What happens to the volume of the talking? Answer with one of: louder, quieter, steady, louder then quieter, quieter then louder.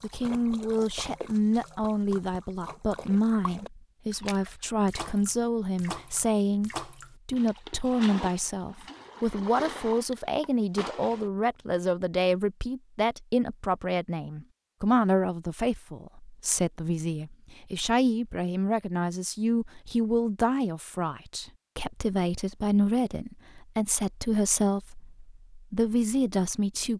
steady.